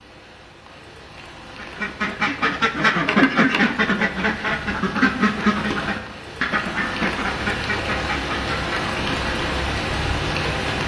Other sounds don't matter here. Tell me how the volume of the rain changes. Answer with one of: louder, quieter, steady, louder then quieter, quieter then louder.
louder.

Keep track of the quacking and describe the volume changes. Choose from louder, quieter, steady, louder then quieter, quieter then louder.
quieter.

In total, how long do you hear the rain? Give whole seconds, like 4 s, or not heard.
11 s.